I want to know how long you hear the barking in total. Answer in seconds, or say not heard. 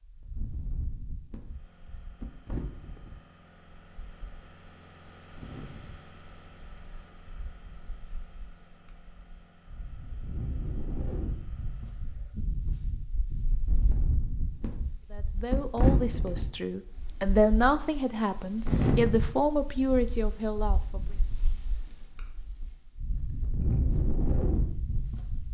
not heard.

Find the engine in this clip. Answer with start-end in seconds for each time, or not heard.
1.4-12.4.